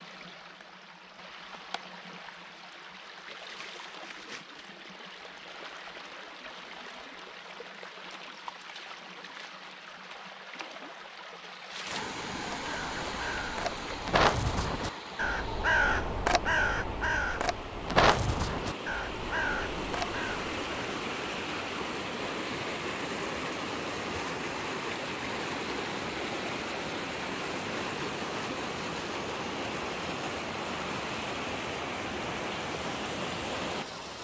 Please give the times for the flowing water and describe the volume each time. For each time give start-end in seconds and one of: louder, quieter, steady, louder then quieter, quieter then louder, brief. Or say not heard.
0.0-34.1 louder.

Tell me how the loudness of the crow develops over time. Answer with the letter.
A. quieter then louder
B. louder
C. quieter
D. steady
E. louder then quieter
E.